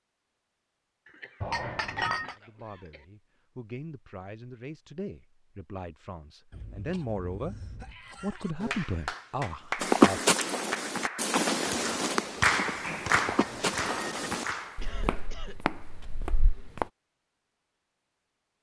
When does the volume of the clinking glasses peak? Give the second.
2 s.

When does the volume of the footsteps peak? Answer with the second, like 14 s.
10 s.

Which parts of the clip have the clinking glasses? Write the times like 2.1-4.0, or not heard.
1.4-2.4, 13.2-14.4.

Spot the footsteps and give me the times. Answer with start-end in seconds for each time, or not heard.
9.8-16.9.